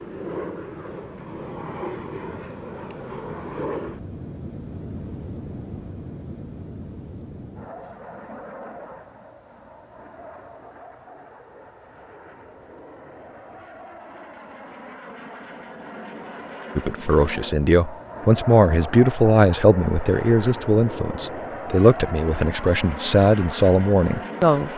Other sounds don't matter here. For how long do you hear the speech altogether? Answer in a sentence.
You can hear the speech for 8 seconds altogether.